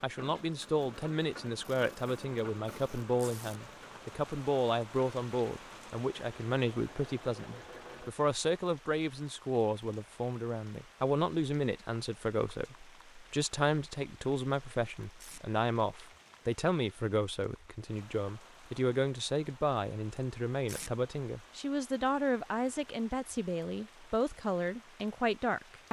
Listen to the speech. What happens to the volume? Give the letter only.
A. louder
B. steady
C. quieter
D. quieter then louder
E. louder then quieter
B.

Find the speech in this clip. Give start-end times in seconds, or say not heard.
0.0-25.8.